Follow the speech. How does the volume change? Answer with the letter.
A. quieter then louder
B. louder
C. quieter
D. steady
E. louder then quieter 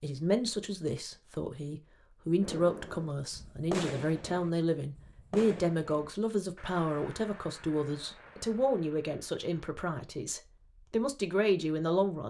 D.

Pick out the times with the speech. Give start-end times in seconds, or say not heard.
0.0-12.2.